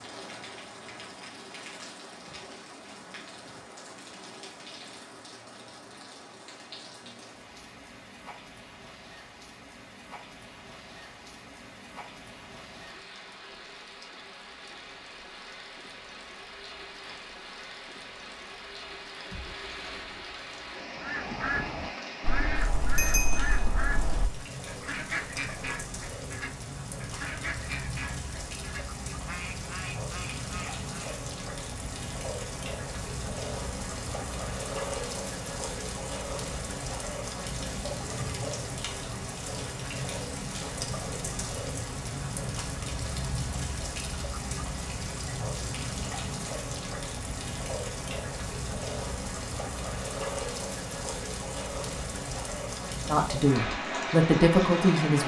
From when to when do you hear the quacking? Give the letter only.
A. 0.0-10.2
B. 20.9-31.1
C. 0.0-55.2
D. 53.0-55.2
B.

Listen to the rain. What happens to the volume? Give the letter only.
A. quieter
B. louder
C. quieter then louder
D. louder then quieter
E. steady
B.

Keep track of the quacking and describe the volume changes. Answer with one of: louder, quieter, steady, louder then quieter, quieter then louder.
quieter.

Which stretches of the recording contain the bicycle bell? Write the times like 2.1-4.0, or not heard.
22.4-24.2.